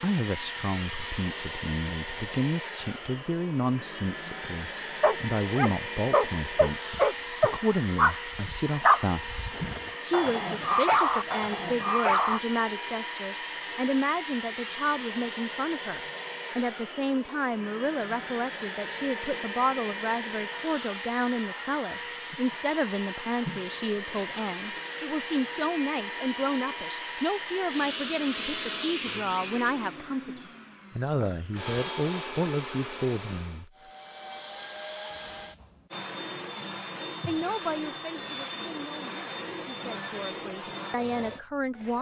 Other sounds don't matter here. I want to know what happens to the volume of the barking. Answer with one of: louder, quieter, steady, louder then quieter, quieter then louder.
quieter then louder.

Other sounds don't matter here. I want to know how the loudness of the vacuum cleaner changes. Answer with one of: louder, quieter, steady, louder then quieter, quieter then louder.
steady.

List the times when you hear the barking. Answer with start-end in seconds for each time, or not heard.
5.0-12.4.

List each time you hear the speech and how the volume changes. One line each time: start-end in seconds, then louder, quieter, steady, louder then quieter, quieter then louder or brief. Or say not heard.
0.0-33.7 steady
37.2-41.9 quieter then louder.